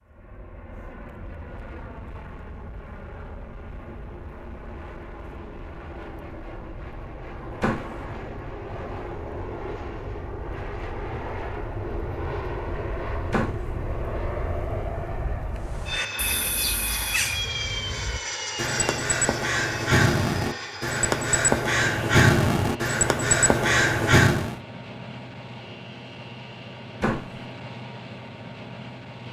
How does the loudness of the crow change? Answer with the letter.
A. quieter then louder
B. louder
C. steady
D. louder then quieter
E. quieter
B.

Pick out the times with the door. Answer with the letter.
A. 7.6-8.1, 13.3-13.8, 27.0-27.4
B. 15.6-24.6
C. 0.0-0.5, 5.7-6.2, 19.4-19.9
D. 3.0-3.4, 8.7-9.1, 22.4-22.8
A.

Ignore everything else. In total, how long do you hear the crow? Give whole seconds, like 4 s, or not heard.
9 s.